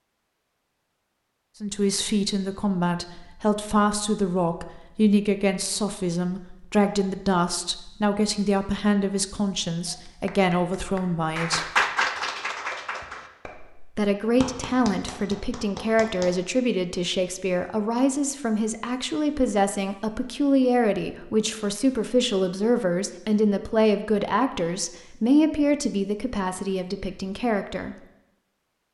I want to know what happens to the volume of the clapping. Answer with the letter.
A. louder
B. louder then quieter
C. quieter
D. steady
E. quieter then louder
B.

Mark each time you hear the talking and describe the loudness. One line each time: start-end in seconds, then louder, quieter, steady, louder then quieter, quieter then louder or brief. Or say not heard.
1.6-11.7 steady
13.9-27.9 steady.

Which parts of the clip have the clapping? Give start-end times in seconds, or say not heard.
9.8-16.4.